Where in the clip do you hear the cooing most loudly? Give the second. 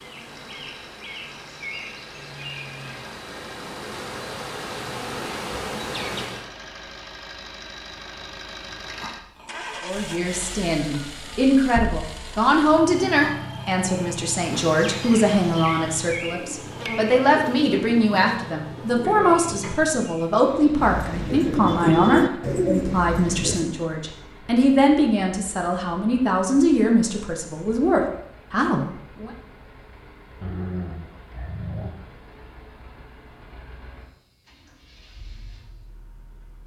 22 s.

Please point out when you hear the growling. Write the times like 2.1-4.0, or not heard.
8.9-9.8, 13.2-14.3, 30.4-31.9.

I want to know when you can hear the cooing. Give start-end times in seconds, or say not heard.
16.3-23.7.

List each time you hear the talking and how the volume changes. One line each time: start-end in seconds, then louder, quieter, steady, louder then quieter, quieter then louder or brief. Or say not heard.
9.8-29.3 steady.